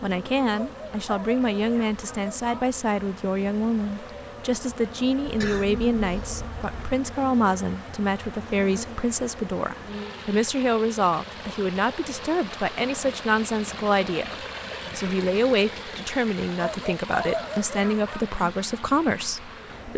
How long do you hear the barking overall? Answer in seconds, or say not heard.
4 s.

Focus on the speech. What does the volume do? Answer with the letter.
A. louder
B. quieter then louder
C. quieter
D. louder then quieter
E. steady
E.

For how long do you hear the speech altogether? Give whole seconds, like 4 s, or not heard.
20 s.